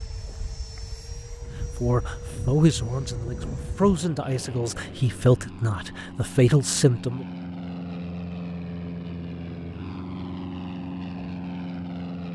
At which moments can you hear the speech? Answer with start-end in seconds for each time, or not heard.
1.8-7.2.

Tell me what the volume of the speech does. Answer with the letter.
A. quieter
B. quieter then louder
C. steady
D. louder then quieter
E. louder
B.